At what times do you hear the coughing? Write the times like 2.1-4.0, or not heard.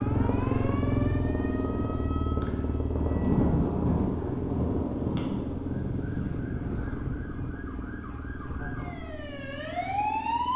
not heard.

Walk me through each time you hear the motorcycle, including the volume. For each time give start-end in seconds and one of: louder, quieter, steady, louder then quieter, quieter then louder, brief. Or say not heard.
0.0-10.5 quieter.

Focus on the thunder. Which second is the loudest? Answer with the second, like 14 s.
3 s.